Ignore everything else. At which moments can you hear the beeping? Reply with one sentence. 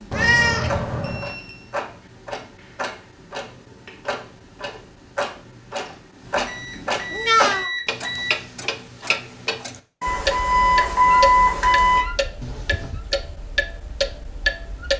You can hear the beeping from 1.0 to 1.6 s, from 6.5 to 8.4 s and from 10.0 to 12.1 s.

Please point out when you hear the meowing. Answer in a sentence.
You can hear the meowing from 0.1 to 1.3 s, from 7.1 to 7.7 s and from 12.4 to 13.0 s.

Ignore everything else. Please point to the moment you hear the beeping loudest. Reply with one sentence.
The loudest moment of the beeping is at 11 seconds.